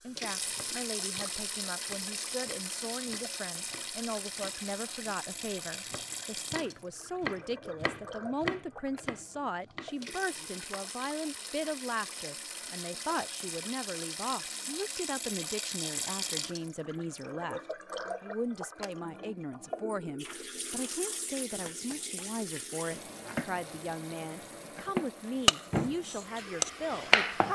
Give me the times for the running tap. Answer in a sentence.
You can hear the running tap from 0.0 to 27.5 s.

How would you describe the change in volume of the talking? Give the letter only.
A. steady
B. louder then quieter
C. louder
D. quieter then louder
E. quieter
A.